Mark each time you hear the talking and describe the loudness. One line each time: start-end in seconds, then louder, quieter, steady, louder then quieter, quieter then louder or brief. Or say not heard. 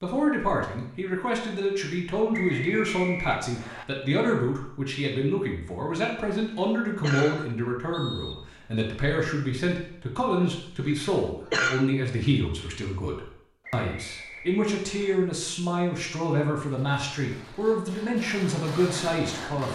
0.0-19.7 steady.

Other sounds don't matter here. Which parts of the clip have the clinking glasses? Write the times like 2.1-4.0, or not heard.
not heard.